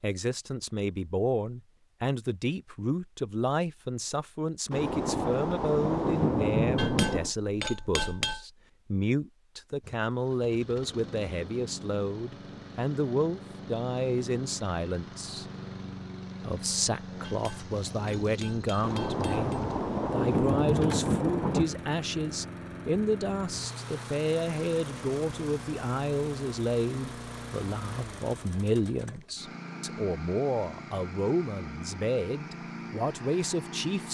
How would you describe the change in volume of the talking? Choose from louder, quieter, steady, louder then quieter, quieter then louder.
steady.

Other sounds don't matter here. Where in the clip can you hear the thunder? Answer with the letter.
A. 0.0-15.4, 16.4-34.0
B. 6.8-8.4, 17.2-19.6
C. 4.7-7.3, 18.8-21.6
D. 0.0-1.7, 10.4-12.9
C.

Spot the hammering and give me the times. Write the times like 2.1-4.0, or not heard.
6.8-8.4, 17.2-19.6.